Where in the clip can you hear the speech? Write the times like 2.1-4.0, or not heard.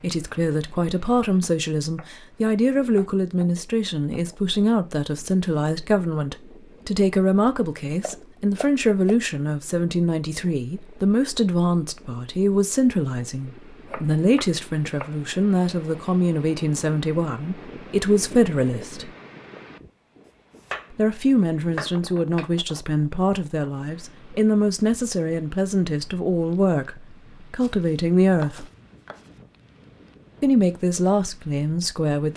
0.0-19.1, 20.9-28.6, 30.4-32.3.